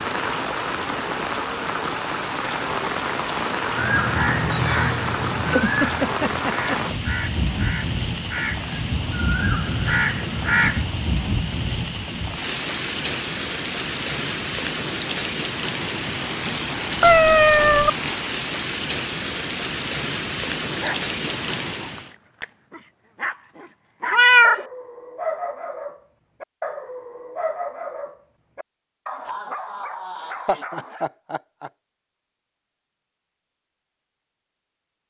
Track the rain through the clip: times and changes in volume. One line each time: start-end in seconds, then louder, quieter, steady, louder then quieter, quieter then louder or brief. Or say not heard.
0.0-22.1 steady.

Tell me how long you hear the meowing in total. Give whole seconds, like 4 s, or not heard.
3 s.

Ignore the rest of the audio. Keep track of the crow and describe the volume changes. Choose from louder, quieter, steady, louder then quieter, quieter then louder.
quieter then louder.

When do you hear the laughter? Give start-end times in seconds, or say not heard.
5.5-7.0, 30.1-31.7.